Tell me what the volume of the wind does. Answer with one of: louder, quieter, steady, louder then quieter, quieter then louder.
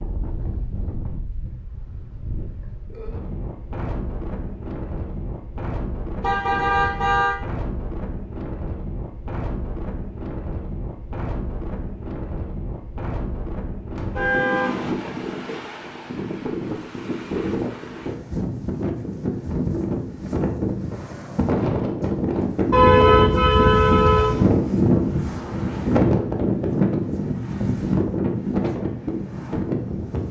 louder.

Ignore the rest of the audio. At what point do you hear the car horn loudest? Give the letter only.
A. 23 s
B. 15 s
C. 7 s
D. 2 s
A.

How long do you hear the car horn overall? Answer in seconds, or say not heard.
4 s.